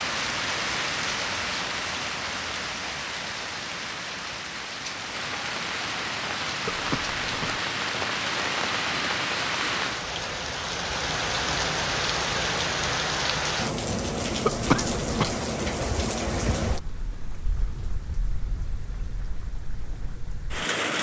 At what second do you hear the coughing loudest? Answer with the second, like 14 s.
15 s.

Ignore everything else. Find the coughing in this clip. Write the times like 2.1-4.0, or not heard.
6.7-7.6, 14.4-15.3.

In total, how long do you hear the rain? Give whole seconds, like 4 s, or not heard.
21 s.